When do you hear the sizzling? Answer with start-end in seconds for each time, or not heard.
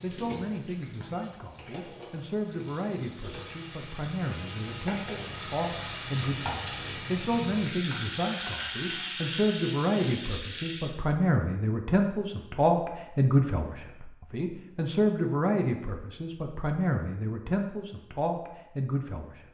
0.0-10.9.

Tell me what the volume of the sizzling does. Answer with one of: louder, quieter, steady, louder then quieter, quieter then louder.
louder.